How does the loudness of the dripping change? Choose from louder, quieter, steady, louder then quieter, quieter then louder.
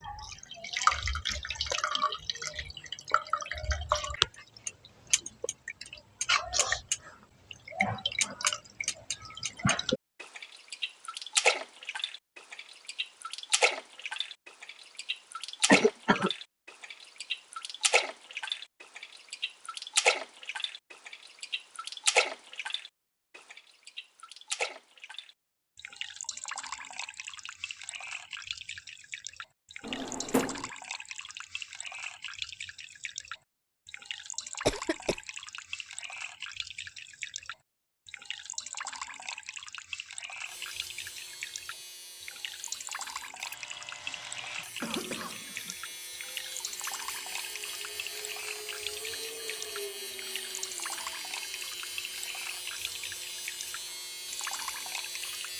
quieter.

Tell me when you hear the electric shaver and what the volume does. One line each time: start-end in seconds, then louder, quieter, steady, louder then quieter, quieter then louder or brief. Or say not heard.
40.5-55.5 louder.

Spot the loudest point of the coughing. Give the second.
16 s.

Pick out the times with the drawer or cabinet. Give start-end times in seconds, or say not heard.
29.8-30.7.